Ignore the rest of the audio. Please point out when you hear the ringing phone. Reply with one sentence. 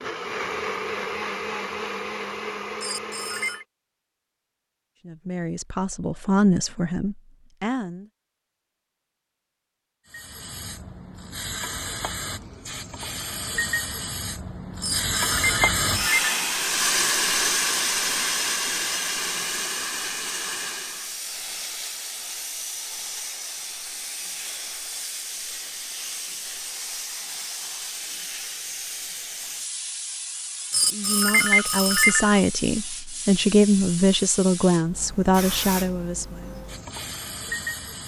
You can hear the ringing phone from 2.8 to 3.6 s, from 14.8 to 16.3 s and from 30.7 to 32.4 s.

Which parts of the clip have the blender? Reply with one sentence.
The blender can be heard from 0.0 to 3.6 s.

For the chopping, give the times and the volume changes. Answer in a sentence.
The chopping can't be heard in this clip.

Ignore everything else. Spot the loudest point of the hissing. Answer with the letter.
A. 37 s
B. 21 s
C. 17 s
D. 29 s
C.